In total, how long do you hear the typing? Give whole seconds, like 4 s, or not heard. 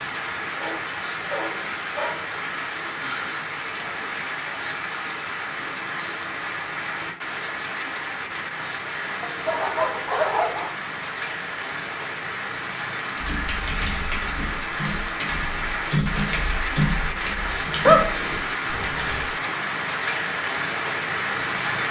6 s.